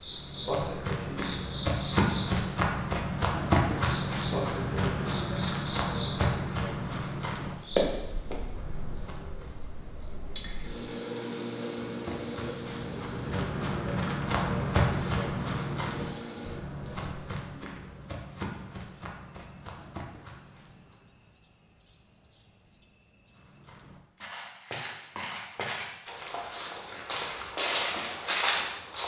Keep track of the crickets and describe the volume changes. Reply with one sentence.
The loudness of the crickets goes up.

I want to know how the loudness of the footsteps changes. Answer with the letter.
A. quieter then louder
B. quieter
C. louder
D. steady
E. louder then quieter
A.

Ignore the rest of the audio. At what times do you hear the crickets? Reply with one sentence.
You can hear the crickets from 0.0 to 24.0 s.